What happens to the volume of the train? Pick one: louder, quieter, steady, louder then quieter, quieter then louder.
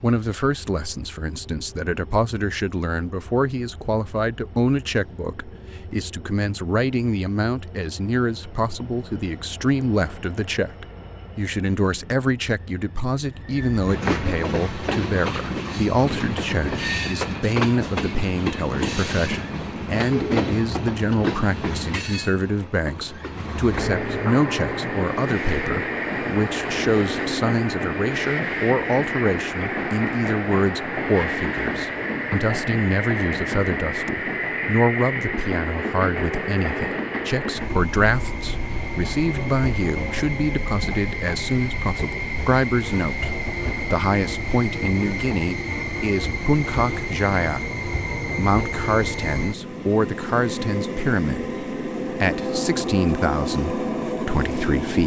louder.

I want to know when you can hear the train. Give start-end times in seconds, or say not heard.
0.0-55.0.